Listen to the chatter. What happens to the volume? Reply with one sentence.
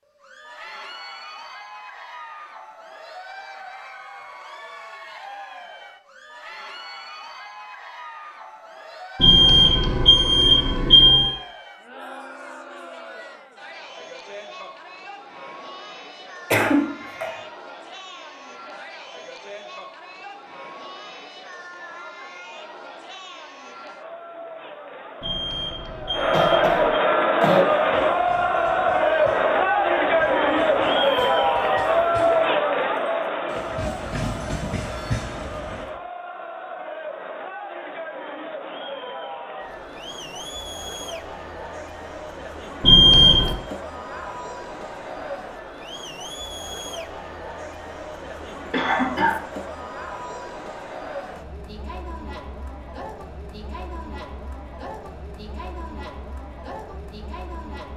The loudness of the chatter goes up, then down.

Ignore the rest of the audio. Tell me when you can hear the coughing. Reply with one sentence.
You can hear the coughing from 16.5 to 17.4 s, from 26.1 to 27.6 s and from 48.7 to 49.4 s.